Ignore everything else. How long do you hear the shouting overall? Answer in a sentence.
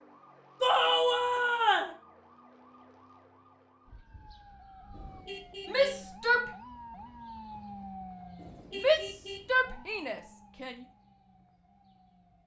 The shouting can be heard for 4 seconds in total.